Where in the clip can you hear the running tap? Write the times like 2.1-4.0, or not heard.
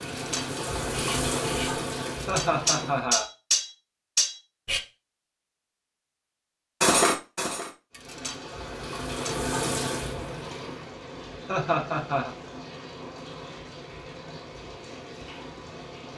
0.0-3.1, 7.9-16.1.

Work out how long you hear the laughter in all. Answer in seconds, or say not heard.
2 s.